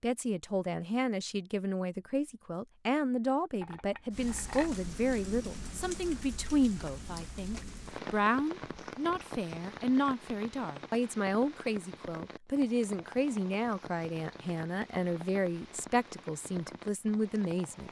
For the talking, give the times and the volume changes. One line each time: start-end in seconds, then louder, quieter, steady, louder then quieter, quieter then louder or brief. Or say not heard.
0.0-17.8 steady.